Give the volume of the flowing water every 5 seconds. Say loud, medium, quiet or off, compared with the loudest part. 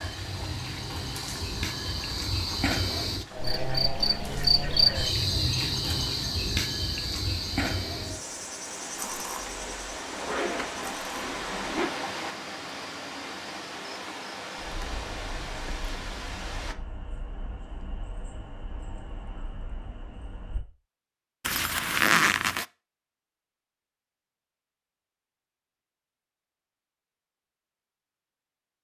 medium, medium, loud, loud, off, off.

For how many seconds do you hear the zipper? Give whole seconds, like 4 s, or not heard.
4 s.